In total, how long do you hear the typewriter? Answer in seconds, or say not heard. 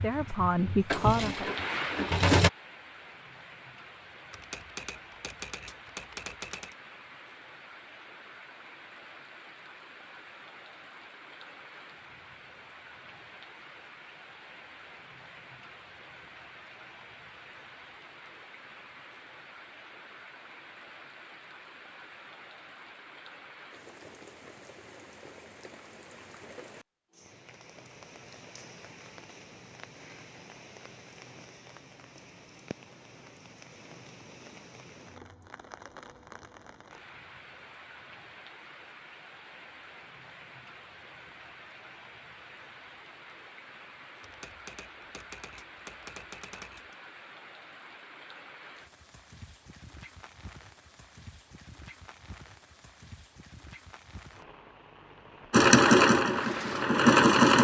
5 s.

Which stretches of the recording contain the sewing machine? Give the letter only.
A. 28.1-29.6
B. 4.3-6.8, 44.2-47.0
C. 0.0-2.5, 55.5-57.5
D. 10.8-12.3
C.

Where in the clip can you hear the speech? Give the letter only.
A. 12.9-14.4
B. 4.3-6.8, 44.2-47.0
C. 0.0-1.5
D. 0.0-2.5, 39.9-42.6
C.